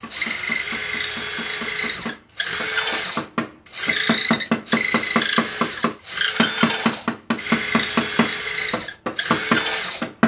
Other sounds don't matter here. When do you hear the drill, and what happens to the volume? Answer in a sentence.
The drill can be heard from 0.0 to 10.1 s, at a steady volume.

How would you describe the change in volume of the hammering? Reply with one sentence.
The loudness of the hammering goes up.